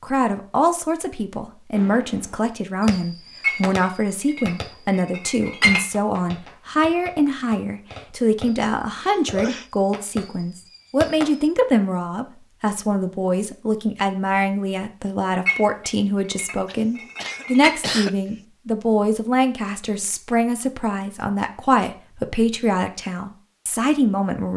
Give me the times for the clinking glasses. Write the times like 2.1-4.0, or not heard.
3.4-5.8, 15.4-17.7.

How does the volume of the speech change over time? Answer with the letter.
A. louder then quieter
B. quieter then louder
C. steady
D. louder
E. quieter
C.